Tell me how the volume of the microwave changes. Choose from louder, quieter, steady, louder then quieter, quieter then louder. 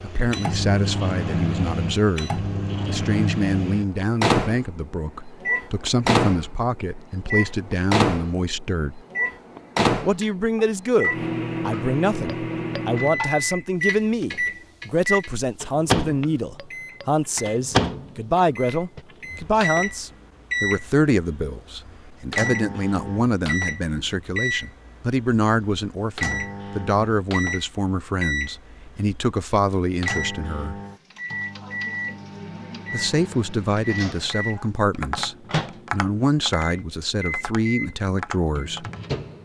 quieter.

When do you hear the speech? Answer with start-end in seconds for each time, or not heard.
0.0-9.0, 10.0-30.8, 32.9-38.9.